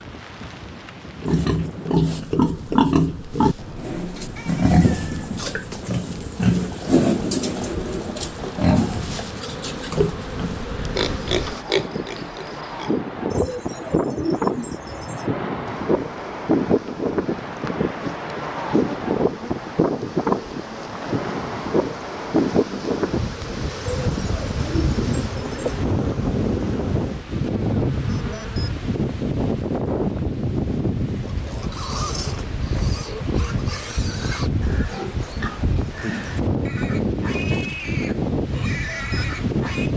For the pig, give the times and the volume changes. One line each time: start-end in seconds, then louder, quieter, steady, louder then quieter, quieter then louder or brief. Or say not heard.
1.2-13.0 quieter
31.2-39.9 steady.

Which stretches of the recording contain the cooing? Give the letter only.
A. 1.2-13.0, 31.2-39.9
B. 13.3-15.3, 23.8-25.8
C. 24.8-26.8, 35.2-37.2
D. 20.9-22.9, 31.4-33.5
B.